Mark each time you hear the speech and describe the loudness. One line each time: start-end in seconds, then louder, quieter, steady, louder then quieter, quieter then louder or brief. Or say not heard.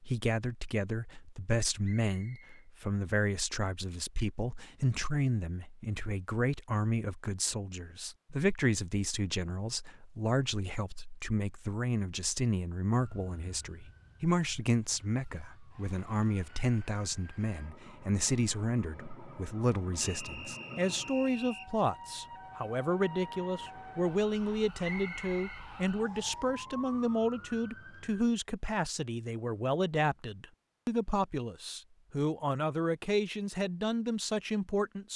0.0-35.1 steady.